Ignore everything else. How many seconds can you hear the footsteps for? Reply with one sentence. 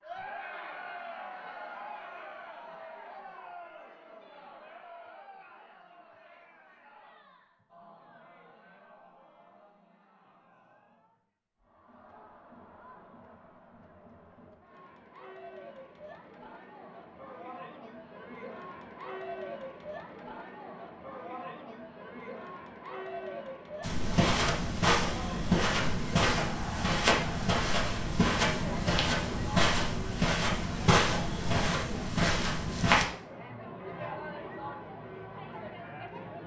You can hear the footsteps for 9 seconds altogether.